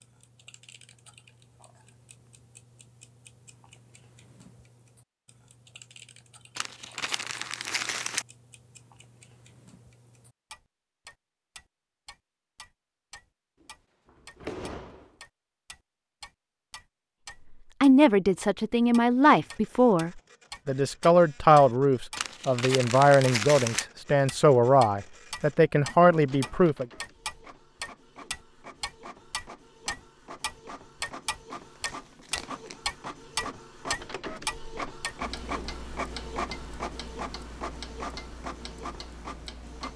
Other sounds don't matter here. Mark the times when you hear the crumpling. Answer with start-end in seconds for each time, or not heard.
6.5-8.2, 22.1-23.9, 31.6-32.8.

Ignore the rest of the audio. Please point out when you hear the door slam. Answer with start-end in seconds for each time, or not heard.
13.6-15.2.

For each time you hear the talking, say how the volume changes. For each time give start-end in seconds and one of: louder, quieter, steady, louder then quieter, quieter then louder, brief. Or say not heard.
17.8-26.9 steady.